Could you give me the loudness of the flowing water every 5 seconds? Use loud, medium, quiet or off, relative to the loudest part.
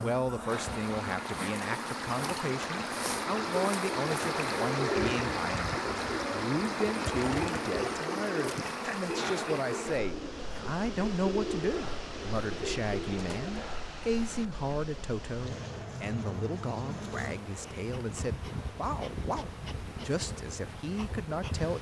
loud, loud, medium, quiet, quiet.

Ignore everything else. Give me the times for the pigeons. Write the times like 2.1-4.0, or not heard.
3.0-13.6.